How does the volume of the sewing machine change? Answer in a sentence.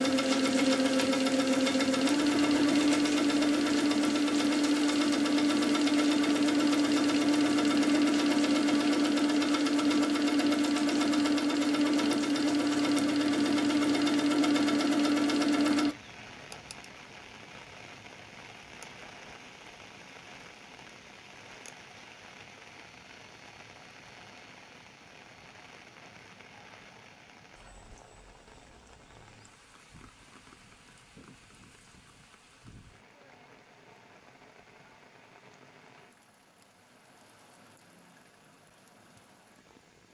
The volume of the sewing machine stays about the same.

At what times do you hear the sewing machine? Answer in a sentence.
The sewing machine can be heard from 0.0 to 15.9 s.